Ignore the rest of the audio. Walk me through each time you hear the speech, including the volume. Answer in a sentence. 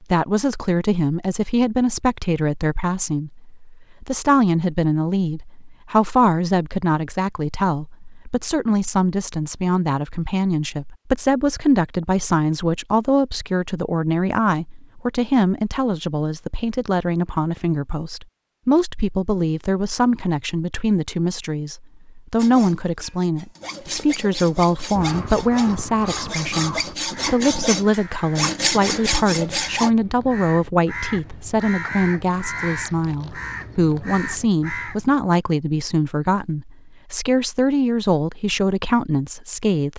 The speech can be heard from 0.0 to 39.9 s, at a steady volume.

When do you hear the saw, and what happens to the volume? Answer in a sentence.
You can hear the saw from 22.4 to 29.9 s, getting louder.